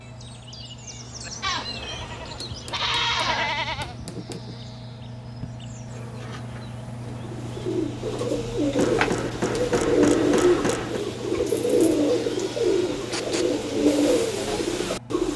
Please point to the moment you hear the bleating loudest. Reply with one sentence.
The volume of the bleating peaks at 3 seconds.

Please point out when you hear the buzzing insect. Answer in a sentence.
You can hear the buzzing insect from 0.0 to 7.5 s.